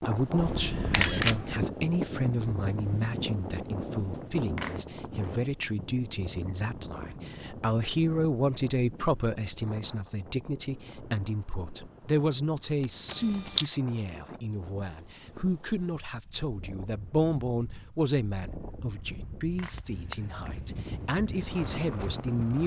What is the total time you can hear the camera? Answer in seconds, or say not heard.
2 s.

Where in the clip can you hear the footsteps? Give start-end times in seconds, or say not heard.
not heard.